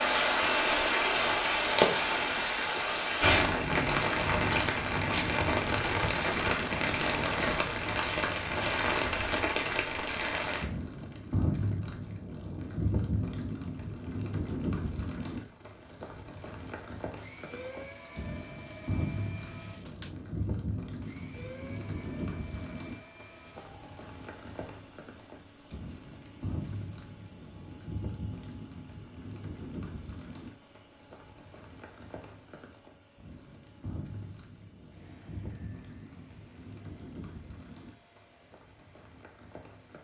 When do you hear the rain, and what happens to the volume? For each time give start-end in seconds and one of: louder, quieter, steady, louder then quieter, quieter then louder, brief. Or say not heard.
0.0-40.0 quieter.